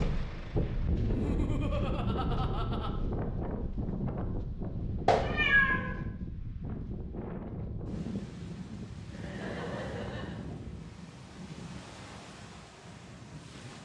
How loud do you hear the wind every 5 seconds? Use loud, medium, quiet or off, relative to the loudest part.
loud, medium, medium.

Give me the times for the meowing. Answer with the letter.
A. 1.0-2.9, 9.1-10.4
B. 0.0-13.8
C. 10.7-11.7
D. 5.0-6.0
D.